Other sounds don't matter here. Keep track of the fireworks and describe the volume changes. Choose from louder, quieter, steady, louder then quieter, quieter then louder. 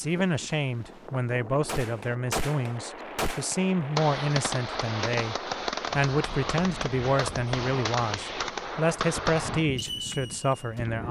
steady.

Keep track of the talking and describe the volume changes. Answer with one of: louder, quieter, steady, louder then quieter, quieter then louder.
steady.